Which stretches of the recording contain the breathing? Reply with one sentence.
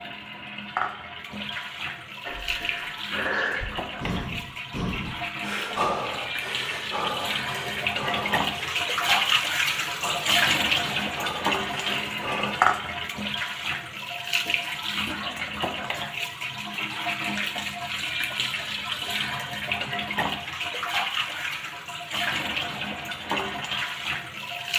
The breathing can be heard from 2.2 to 12.6 s.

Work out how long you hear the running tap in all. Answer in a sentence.
The running tap can be heard for 25 seconds in total.